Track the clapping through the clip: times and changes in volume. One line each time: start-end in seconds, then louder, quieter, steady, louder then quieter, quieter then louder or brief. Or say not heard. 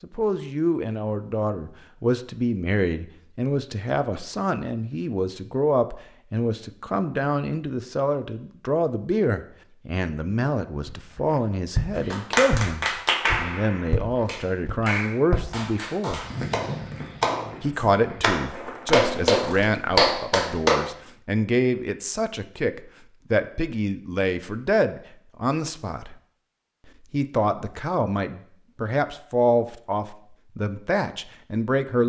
12.1-20.8 quieter then louder.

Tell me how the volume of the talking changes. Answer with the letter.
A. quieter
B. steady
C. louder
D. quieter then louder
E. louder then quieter
B.